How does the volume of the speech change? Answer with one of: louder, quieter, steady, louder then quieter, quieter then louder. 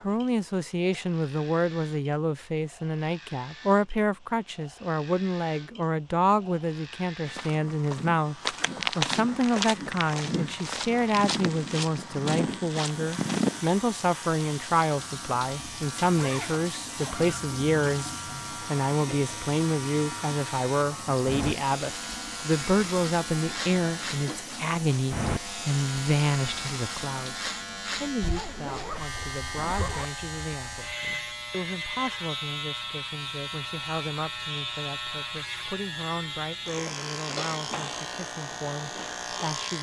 quieter.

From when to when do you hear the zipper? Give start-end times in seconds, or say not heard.
16.1-17.4, 28.2-30.1.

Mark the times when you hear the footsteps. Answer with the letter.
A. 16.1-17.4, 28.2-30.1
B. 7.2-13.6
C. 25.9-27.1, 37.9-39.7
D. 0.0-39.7
B.